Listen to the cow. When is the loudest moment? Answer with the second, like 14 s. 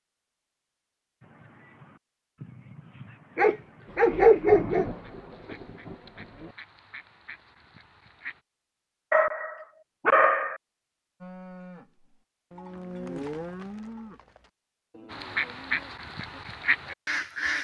13 s.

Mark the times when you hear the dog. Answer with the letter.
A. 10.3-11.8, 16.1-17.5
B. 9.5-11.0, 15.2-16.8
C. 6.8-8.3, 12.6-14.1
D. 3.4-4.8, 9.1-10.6
D.